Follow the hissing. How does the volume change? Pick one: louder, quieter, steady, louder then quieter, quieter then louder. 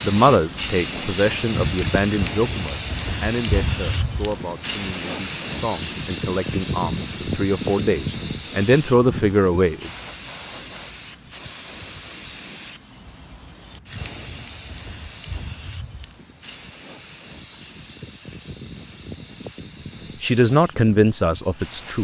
quieter.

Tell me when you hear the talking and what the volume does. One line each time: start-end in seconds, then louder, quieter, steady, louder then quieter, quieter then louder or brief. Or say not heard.
0.0-9.9 quieter then louder
20.2-21.9 brief.